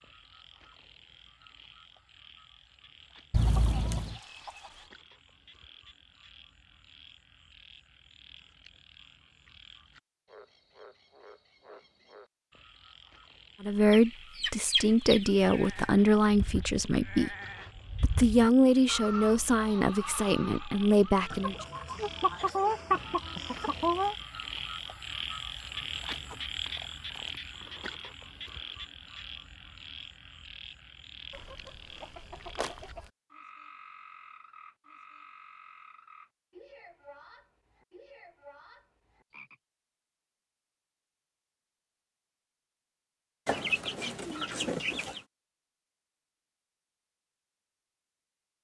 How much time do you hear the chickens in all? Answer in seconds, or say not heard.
10 s.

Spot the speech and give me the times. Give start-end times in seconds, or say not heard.
13.6-17.4, 18.0-21.6.